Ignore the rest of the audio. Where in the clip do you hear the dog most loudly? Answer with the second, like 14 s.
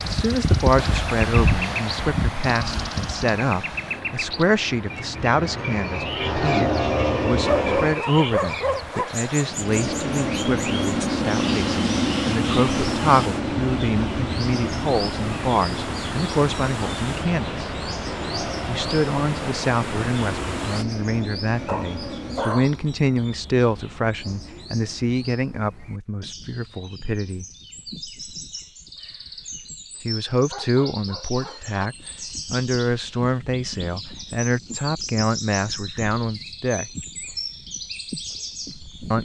8 s.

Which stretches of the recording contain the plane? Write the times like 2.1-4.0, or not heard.
0.0-8.0, 9.6-22.6.